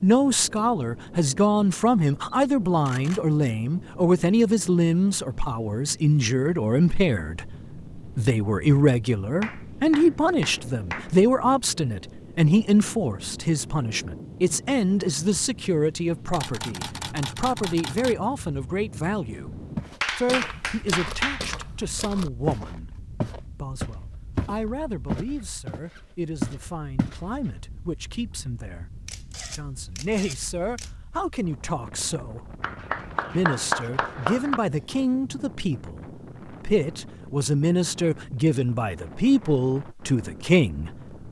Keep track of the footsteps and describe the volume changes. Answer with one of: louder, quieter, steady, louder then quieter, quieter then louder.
louder.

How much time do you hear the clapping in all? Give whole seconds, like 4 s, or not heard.
5 s.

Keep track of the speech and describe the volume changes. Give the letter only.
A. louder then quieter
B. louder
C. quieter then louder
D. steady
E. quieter
C.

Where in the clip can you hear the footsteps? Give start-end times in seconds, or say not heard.
19.8-27.2.